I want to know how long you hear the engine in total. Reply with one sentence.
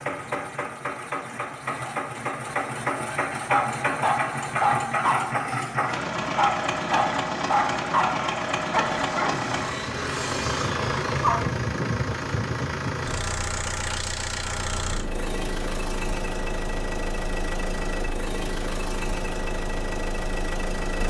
The engine can be heard for 21 seconds in total.